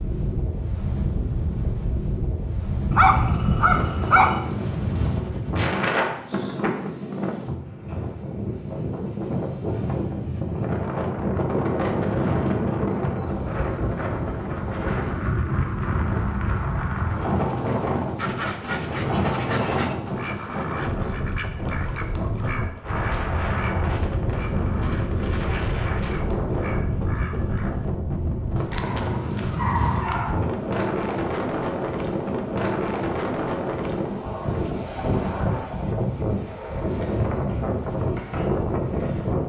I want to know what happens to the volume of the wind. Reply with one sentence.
The volume of the wind stays about the same.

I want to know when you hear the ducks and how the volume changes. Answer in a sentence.
The ducks can be heard from 18.1 to 27.7 s, getting quieter.